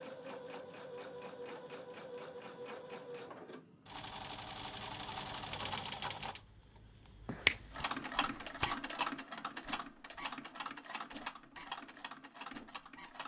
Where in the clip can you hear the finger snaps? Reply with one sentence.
You can hear the finger snaps from 7.2 to 8.7 s.